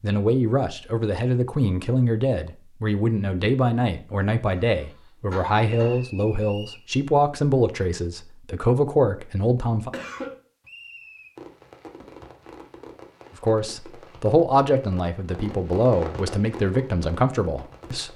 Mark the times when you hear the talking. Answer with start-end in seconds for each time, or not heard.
0.0-9.9, 13.4-18.1.